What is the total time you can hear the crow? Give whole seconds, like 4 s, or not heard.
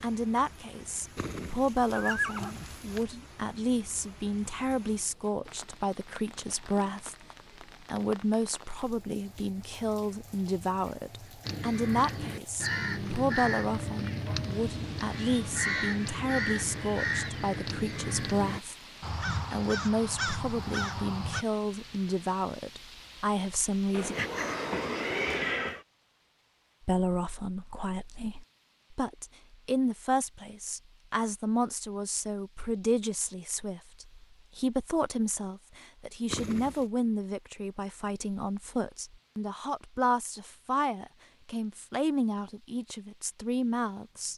10 s.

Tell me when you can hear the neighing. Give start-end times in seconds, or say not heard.
1.1-3.0, 23.9-25.9, 36.3-36.9.